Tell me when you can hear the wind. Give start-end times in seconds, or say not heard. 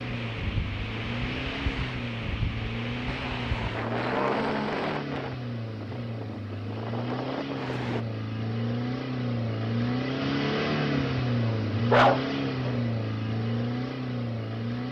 0.0-8.1.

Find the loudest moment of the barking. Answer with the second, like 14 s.
12 s.